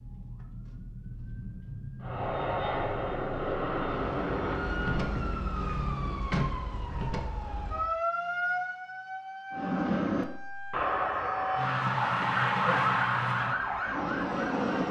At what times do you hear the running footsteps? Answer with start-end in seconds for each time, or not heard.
not heard.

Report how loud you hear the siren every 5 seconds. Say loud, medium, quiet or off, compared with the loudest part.
medium, loud, loud.